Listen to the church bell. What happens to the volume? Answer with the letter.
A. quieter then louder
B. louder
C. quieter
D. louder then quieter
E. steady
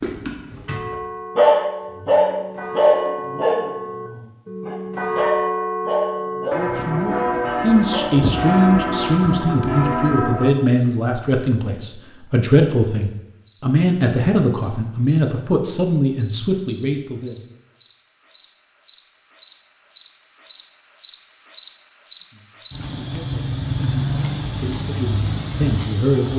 B.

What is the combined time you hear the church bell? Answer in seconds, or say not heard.
10 s.